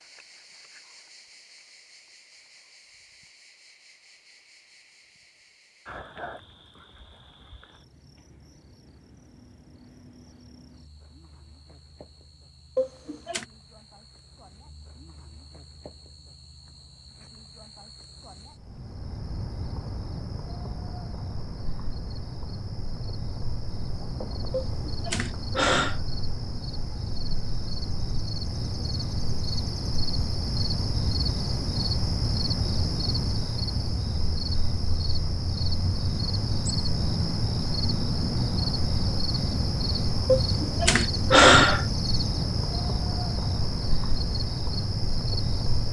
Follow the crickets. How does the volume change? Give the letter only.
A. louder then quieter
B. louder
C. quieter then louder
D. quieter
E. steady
B.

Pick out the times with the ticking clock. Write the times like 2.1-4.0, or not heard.
not heard.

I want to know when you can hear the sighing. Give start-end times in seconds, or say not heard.
12.8-13.4, 24.5-26.0, 40.2-41.9.